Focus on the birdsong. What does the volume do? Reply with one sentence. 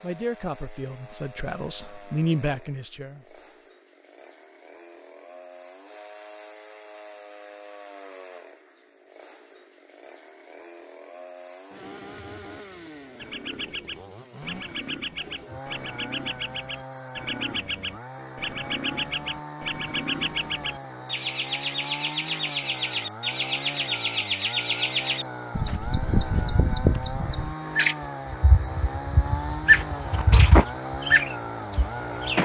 The volume of the birdsong goes up.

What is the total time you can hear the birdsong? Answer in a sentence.
You can hear the birdsong for 19 seconds altogether.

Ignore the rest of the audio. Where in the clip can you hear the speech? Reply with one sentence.
You can hear the speech from 0.0 to 3.4 s.